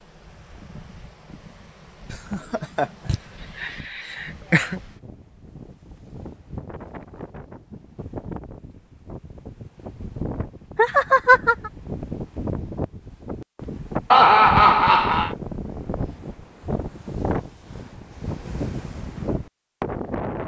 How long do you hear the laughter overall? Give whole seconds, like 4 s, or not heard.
5 s.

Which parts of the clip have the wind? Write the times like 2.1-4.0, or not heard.
0.0-20.4.